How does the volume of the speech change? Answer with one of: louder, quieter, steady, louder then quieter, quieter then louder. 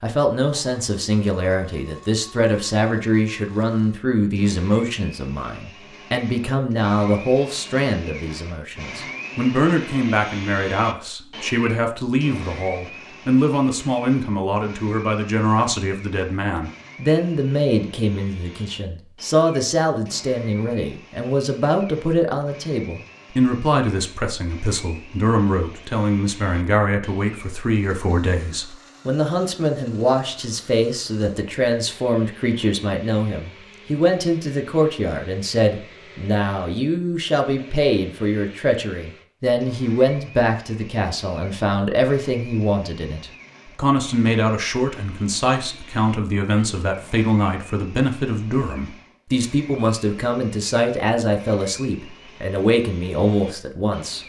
steady.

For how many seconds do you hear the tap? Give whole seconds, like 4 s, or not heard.
not heard.